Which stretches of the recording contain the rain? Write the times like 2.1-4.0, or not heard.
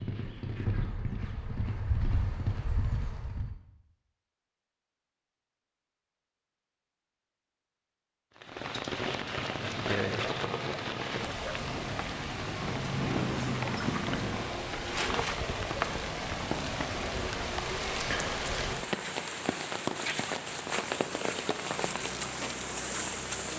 8.3-23.5.